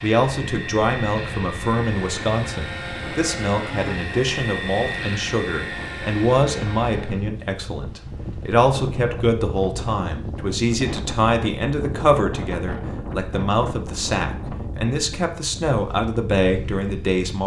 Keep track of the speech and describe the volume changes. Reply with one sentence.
The volume of the speech stays about the same.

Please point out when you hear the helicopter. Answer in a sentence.
You can hear the helicopter from 0.0 to 7.3 s.